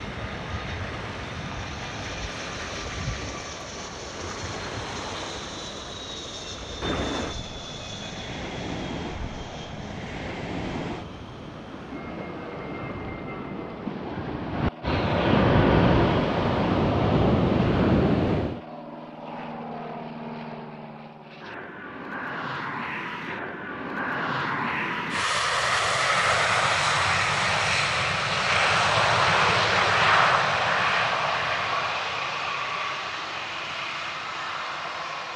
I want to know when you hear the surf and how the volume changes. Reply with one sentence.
The surf can be heard from 0.0 to 18.6 s, getting louder.